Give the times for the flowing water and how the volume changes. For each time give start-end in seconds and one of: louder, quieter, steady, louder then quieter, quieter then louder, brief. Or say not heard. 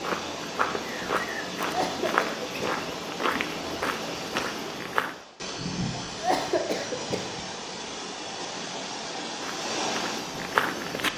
0.0-11.1 steady.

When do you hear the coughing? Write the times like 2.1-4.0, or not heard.
1.6-2.9, 6.0-7.5.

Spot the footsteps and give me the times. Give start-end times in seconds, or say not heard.
0.0-5.2, 9.4-11.1.